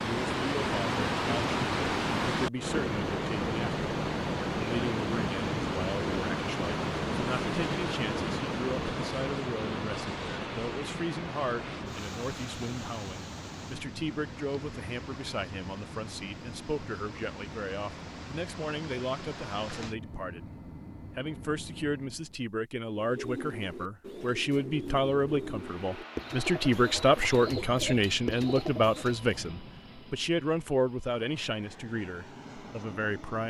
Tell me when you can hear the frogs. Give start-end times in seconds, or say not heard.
not heard.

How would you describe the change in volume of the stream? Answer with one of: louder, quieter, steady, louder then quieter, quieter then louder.
quieter.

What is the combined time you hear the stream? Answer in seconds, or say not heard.
20 s.